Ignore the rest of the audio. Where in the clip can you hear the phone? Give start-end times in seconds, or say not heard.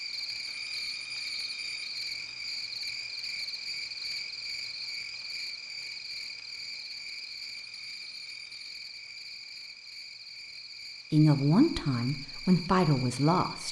0.4-2.4, 7.5-8.8.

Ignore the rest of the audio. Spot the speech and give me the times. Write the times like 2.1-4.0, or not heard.
11.1-13.6.